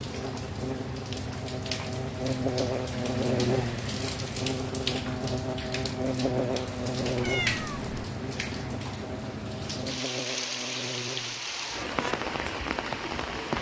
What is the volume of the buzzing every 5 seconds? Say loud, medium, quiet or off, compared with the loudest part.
loud, loud, medium.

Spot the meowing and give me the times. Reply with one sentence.
The meowing can be heard from 7.2 to 8.1 s.